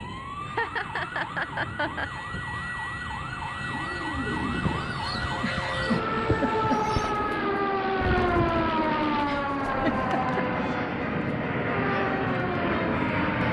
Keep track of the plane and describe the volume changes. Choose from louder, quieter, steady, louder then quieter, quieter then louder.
louder.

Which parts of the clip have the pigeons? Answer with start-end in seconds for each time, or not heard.
3.5-9.8.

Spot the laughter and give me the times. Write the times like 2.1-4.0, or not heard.
0.5-2.2, 5.3-6.8, 9.2-10.4.